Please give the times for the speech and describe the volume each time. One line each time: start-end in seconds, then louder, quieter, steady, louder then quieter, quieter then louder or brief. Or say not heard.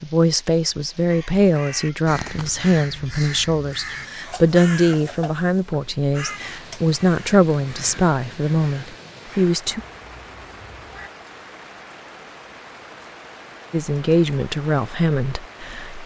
0.0-9.8 steady
13.7-16.0 brief.